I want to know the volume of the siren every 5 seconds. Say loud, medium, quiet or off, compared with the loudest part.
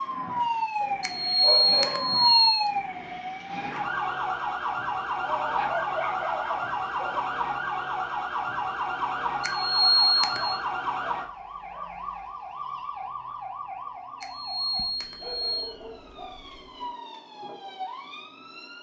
loud, loud, medium, quiet.